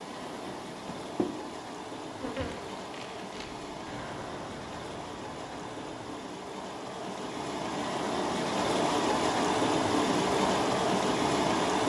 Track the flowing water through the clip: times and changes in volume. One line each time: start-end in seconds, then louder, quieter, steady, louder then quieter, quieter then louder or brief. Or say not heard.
0.0-11.8 louder.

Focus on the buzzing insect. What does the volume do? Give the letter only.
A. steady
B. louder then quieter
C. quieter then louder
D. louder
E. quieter
E.